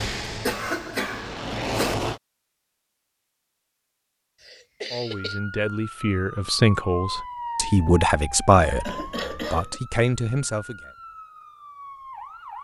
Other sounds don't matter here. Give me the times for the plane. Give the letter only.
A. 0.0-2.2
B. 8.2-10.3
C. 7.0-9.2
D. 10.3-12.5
A.